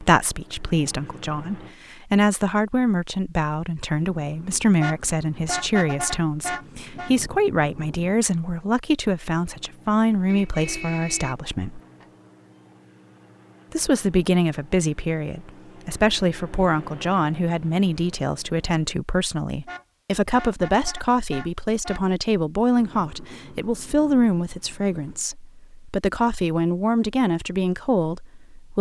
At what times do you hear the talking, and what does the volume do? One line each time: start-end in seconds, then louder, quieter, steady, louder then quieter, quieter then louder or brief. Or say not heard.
0.0-11.8 steady
13.7-28.7 steady.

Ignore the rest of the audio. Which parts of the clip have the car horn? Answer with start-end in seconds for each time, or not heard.
4.8-7.1, 10.2-12.1, 19.6-22.1.